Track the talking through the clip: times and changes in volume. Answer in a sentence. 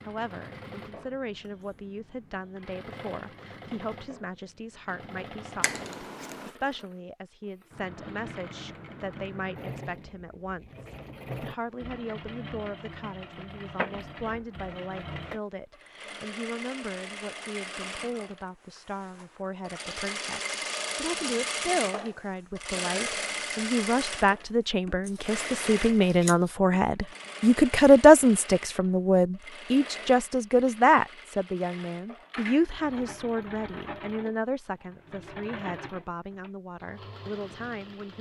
The talking can be heard from 0.1 to 38.1 s, getting louder then quieter.